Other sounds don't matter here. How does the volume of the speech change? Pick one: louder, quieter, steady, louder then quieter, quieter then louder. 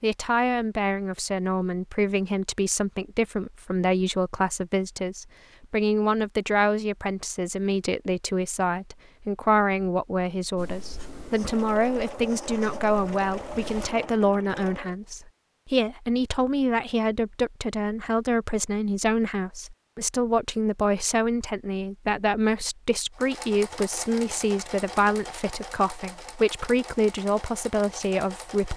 steady.